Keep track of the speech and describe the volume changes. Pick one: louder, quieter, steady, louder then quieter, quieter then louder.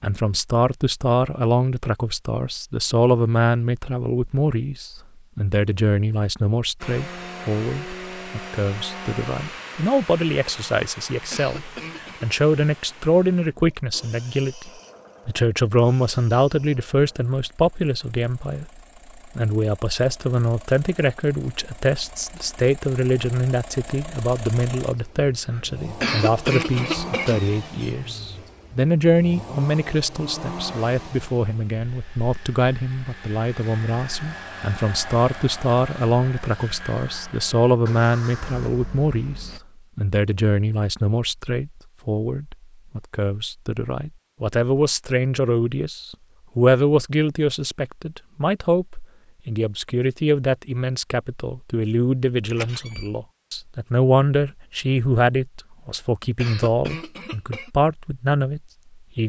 steady.